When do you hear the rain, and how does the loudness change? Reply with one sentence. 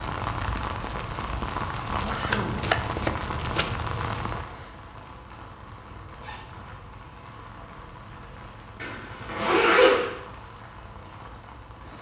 You can hear the rain from 0.0 to 11.9 s, getting quieter.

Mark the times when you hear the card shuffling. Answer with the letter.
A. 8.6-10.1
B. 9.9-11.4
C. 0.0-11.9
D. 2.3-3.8
D.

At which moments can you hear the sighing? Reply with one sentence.
The sighing can't be heard in this clip.